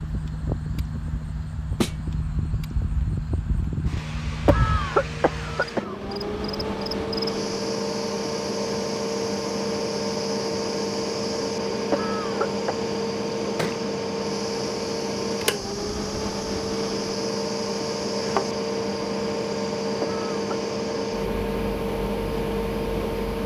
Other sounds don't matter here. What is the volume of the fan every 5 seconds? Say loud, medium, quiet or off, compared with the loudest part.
medium, loud, loud, loud, loud.